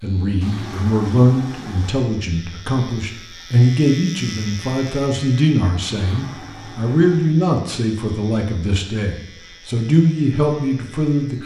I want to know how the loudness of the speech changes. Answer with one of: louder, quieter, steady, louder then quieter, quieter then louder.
steady.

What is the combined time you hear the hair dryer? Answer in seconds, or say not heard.
not heard.